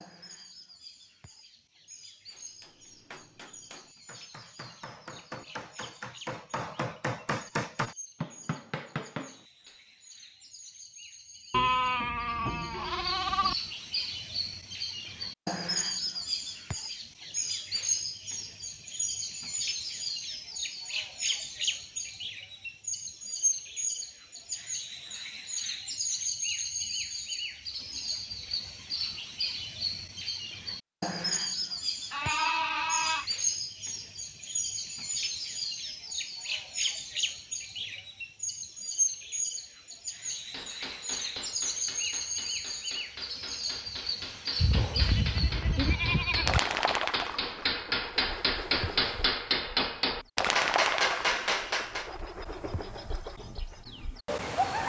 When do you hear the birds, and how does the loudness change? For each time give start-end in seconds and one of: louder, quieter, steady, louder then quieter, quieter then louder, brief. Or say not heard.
0.0-54.8 louder.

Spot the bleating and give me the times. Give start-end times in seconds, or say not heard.
11.5-13.6, 32.1-33.2, 44.5-46.6.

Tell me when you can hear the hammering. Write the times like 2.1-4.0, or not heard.
2.3-9.8, 40.2-52.1.